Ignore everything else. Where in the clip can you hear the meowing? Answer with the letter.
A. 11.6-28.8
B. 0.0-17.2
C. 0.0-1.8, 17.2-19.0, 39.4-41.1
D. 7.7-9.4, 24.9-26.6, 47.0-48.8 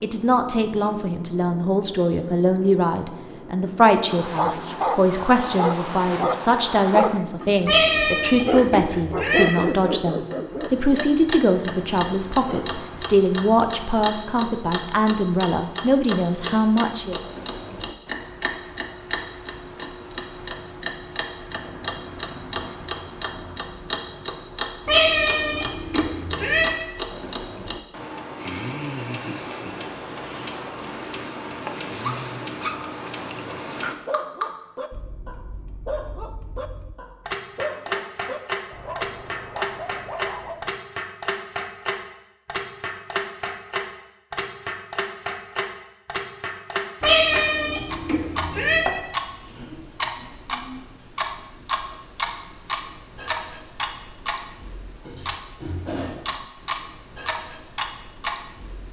D.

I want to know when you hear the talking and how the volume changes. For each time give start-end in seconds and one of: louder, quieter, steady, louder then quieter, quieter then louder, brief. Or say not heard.
0.0-17.2 steady.